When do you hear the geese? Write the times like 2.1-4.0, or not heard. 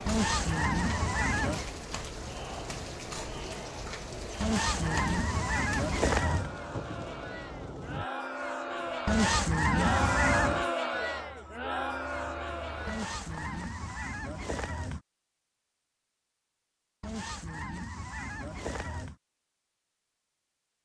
0.1-1.7, 4.4-6.5, 9.1-10.7, 12.8-15.0, 17.0-19.1.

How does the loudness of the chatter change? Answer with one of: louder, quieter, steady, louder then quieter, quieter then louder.
louder.